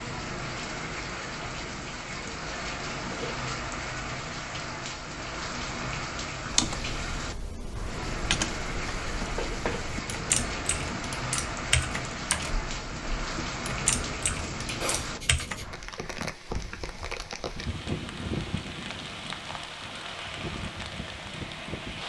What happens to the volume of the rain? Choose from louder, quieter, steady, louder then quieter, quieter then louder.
steady.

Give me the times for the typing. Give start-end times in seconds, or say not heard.
6.5-15.6.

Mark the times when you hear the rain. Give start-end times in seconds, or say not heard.
0.0-22.0.